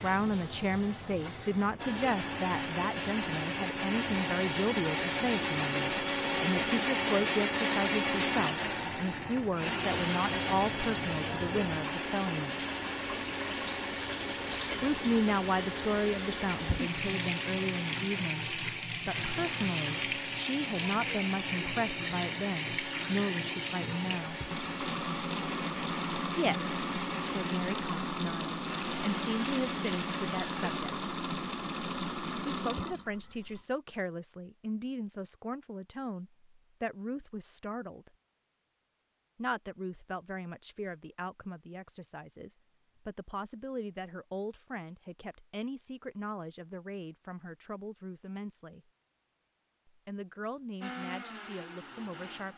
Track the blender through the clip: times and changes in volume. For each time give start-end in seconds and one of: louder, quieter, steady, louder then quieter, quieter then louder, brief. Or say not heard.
1.8-30.8 quieter
50.8-52.5 brief.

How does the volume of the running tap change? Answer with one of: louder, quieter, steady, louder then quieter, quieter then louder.
louder.